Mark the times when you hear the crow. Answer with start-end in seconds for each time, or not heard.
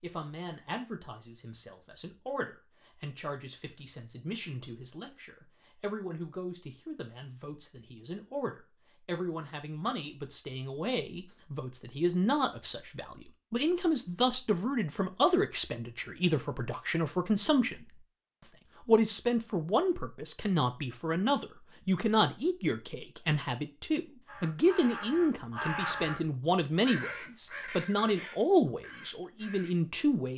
24.2-29.8.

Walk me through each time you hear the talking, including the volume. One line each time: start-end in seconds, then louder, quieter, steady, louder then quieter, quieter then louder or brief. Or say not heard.
0.0-17.9 louder
18.9-30.3 steady.